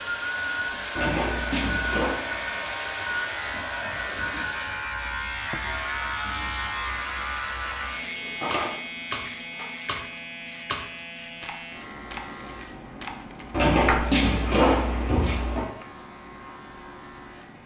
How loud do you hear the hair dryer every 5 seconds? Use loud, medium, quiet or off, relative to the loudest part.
loud, medium, off, off.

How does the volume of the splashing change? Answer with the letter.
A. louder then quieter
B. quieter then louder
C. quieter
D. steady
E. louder
E.